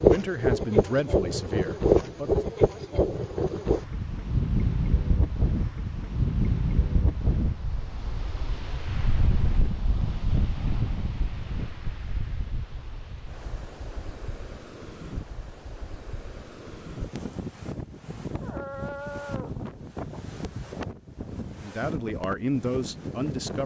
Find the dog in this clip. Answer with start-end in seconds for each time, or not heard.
18.4-19.6.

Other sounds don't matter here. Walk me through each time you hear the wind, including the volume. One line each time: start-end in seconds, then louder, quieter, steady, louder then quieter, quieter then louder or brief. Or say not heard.
0.0-23.6 quieter.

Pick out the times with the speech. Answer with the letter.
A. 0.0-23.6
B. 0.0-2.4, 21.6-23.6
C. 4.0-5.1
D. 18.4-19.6
B.